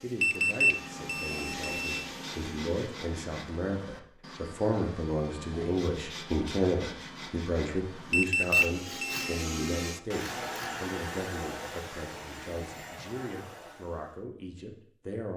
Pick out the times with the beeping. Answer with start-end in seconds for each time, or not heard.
0.2-2.0, 8.1-9.2.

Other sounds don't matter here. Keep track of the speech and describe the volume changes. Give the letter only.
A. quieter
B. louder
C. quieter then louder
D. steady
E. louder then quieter
E.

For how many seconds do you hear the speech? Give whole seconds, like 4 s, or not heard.
15 s.